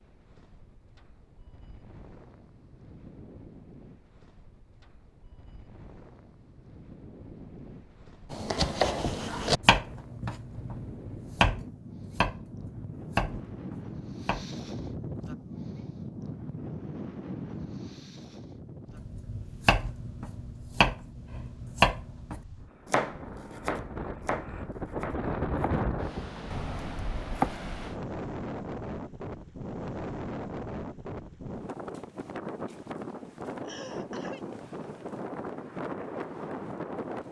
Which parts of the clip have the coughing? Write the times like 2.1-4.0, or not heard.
33.6-34.5.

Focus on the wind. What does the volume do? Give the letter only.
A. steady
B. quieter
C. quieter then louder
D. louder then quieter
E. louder
E.